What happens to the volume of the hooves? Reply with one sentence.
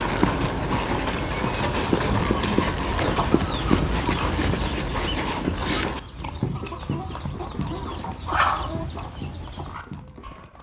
The loudness of the hooves goes down.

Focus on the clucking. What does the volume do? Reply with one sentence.
The loudness of the clucking goes down, then up.